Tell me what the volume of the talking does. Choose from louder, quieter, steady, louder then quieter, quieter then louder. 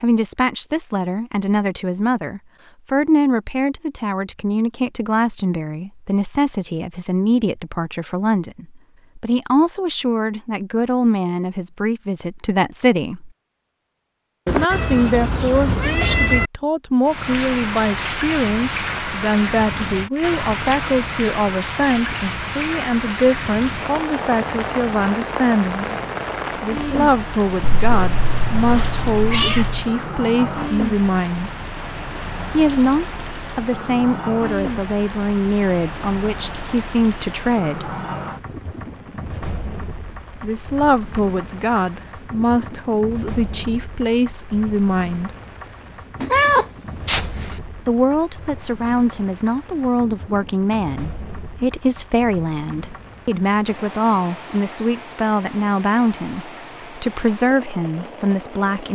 steady.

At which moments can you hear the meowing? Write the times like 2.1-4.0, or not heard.
14.4-16.5, 27.6-29.9, 46.2-47.5.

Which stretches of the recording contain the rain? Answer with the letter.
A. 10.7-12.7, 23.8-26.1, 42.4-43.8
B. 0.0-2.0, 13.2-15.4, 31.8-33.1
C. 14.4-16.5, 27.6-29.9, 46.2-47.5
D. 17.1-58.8
D.